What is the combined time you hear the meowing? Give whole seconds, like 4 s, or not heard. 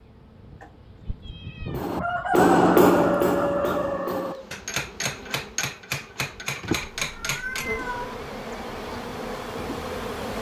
3 s.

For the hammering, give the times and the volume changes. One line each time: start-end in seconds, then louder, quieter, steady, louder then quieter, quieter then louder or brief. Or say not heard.
1.6-7.7 quieter.